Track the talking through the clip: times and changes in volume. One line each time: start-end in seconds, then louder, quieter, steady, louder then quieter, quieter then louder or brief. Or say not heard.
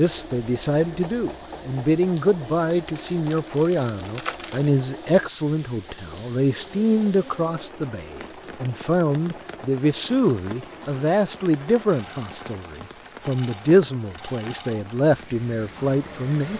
0.0-16.5 steady.